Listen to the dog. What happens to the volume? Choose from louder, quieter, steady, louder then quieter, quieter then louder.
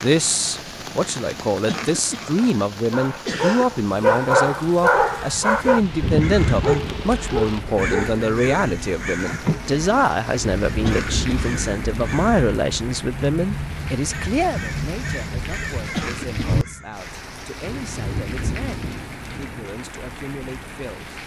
louder then quieter.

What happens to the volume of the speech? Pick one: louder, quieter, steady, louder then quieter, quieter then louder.
quieter.